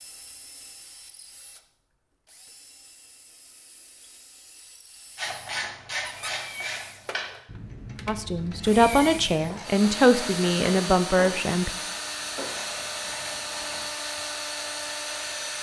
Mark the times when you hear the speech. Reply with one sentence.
You can hear the speech from 8.1 to 11.7 s.